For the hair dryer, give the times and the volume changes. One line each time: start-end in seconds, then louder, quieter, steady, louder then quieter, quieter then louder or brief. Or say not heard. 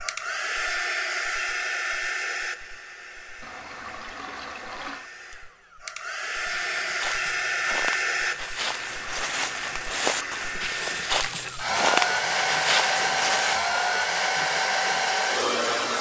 0.0-15.9 quieter then louder.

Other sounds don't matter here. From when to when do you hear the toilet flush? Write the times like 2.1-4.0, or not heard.
3.4-5.1, 8.6-10.7.